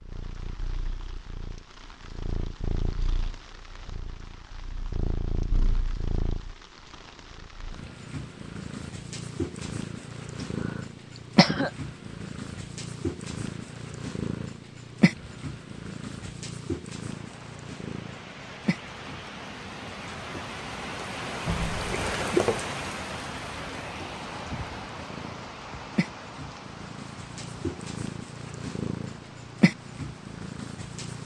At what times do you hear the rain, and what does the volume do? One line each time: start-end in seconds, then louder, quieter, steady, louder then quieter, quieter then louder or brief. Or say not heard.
0.0-31.2 louder then quieter.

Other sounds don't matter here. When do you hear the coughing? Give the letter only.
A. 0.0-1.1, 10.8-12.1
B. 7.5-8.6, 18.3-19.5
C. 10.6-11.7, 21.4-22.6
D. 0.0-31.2
C.